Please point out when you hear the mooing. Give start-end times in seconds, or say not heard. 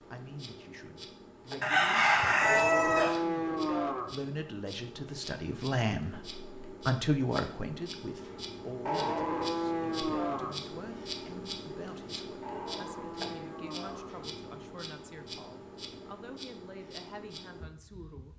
2.4-4.2, 8.8-10.6, 12.4-14.1.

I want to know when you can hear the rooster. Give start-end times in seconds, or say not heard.
1.6-3.2.